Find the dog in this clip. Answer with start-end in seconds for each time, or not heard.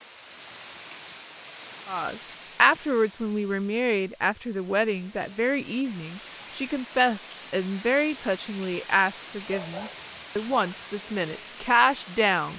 9.4-10.8.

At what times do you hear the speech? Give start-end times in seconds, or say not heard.
1.9-12.5.